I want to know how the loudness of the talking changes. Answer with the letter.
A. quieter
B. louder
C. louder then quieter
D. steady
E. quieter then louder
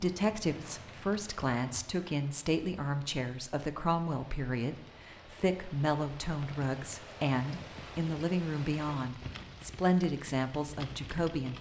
D.